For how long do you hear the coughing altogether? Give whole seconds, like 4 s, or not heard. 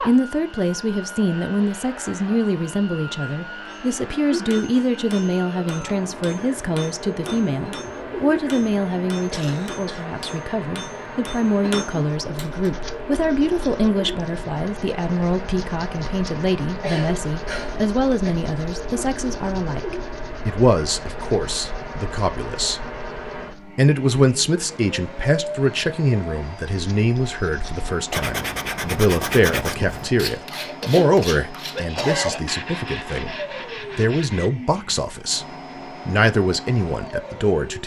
4 s.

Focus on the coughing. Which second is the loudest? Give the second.
32 s.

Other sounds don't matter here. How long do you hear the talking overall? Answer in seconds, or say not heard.
36 s.